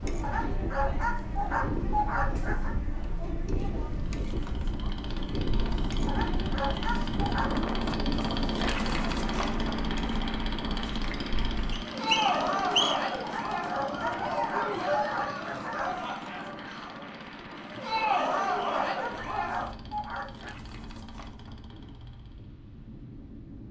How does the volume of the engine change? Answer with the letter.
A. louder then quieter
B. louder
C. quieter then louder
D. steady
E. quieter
E.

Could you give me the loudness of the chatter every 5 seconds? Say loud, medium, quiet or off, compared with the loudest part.
medium, medium, loud, loud, off.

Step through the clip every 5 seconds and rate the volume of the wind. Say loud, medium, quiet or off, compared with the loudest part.
loud, loud, medium, medium, quiet.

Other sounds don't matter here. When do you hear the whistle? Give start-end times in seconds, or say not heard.
11.7-13.2.